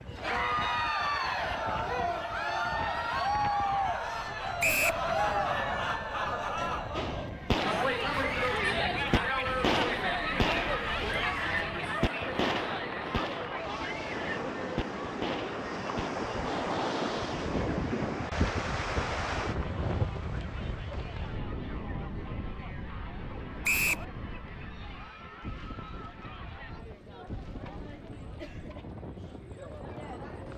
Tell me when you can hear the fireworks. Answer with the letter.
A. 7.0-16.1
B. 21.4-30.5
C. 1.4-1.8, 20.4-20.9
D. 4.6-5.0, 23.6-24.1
A.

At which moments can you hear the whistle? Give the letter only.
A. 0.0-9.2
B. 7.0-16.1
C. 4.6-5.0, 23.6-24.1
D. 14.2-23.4
C.